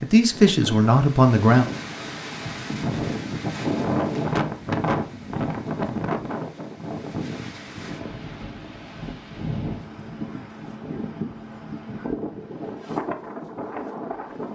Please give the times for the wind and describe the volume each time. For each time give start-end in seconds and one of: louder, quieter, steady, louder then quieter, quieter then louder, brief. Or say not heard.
0.0-14.5 louder then quieter.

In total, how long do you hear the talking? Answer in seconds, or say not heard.
2 s.